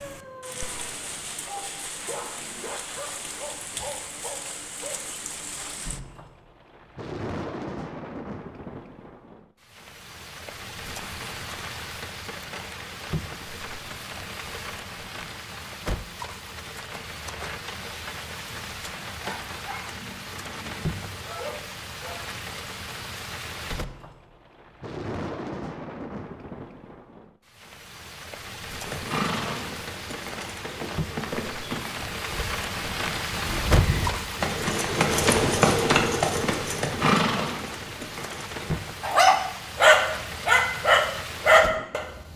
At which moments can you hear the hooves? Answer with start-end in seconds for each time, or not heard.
28.8-38.8.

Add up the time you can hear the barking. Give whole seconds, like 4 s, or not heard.
11 s.